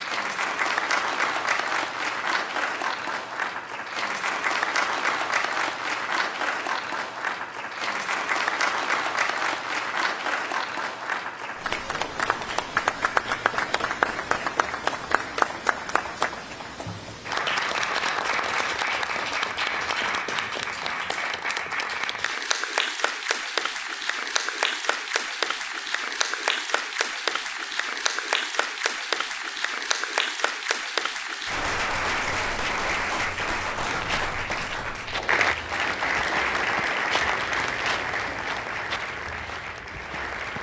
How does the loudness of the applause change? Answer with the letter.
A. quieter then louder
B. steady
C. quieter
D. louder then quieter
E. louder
B.